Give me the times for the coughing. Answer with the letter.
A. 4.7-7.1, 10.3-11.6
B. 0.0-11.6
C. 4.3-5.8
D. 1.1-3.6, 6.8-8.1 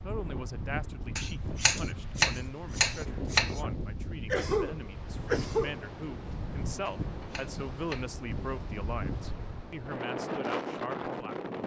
C.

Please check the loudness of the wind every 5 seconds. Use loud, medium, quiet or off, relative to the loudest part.
medium, medium, loud.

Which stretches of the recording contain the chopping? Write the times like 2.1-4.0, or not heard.
1.1-3.6, 6.8-8.1.